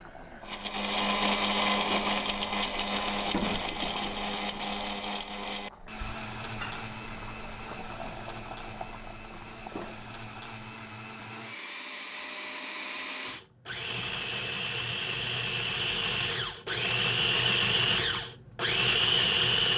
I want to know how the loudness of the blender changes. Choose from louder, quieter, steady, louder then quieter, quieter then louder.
quieter then louder.